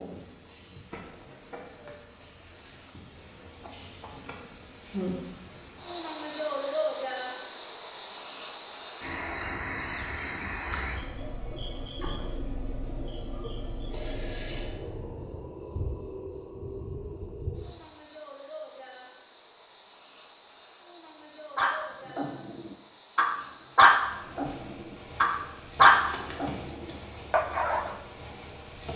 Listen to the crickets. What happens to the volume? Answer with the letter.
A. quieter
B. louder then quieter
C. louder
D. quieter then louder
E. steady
A.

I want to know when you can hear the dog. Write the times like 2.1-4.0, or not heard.
21.6-24.6, 25.2-26.6, 27.3-27.9.